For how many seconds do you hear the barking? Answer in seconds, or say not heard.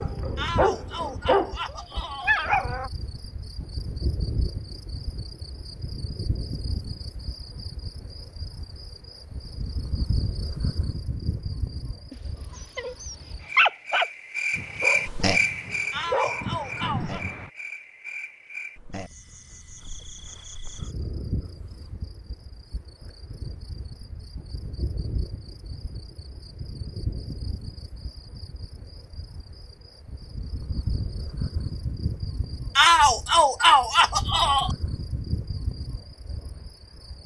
8 s.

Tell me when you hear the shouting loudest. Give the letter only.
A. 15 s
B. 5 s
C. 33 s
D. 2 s
C.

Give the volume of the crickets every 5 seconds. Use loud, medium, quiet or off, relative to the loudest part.
medium, medium, loud, loud, medium, medium, medium, medium.